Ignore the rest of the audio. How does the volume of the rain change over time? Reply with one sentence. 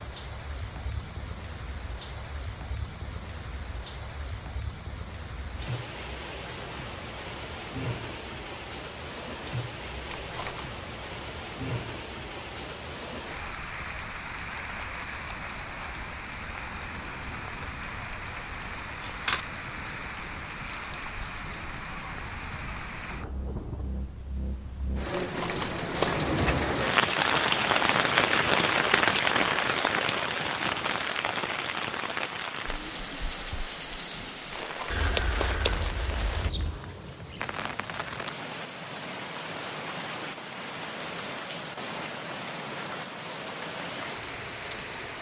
The loudness of the rain goes up, then down.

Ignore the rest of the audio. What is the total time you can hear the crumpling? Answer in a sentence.
You can hear the crumpling for 3 seconds altogether.